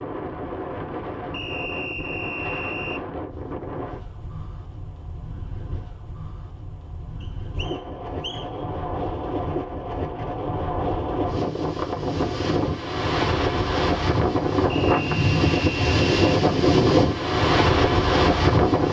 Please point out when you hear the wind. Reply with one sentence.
You can hear the wind from 0.0 to 18.8 s.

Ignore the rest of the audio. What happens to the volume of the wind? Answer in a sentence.
The loudness of the wind goes down, then up.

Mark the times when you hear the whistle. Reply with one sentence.
You can hear the whistle from 1.3 to 3.0 s, from 7.2 to 8.5 s and from 14.7 to 16.4 s.